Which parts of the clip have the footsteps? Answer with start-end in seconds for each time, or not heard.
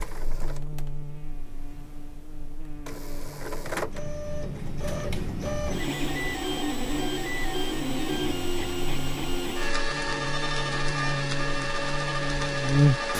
not heard.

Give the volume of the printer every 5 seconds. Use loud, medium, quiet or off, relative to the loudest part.
medium, loud, loud.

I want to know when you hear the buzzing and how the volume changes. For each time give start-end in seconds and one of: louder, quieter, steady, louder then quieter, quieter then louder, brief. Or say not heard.
0.0-13.1 louder.